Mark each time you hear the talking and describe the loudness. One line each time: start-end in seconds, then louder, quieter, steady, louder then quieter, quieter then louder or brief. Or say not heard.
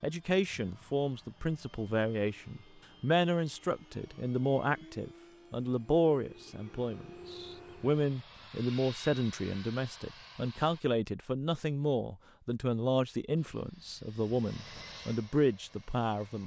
0.0-16.4 steady.